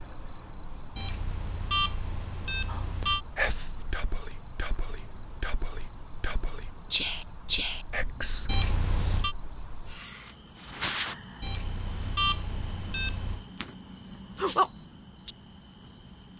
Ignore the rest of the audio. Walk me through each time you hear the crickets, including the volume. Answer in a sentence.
The crickets can be heard from 0.0 to 16.3 s, getting louder.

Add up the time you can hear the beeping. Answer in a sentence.
You can hear the beeping for 5 seconds altogether.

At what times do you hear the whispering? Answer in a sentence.
You can hear the whispering from 2.6 to 9.2 s.